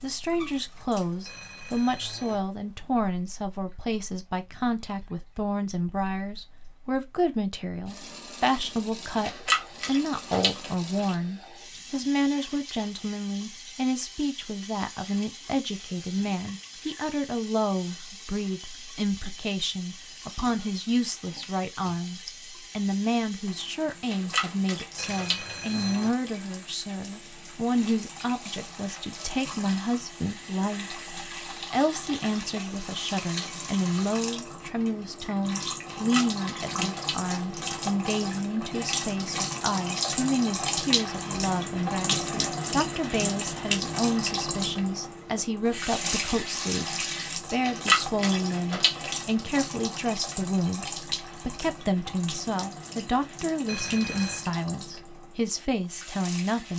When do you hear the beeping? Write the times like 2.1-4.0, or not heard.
1.2-2.4, 24.9-26.1, 53.6-54.5.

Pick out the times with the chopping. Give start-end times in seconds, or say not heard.
not heard.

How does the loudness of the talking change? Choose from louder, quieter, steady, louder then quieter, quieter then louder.
steady.